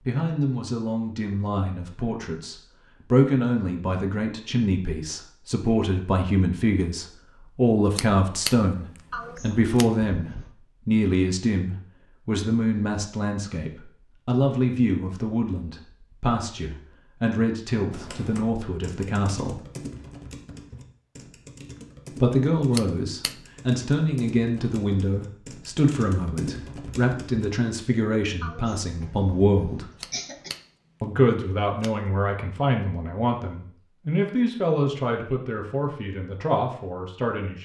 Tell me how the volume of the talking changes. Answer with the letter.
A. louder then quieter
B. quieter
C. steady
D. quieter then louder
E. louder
C.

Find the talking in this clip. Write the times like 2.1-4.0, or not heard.
0.1-19.6, 22.2-29.9, 31.0-37.6.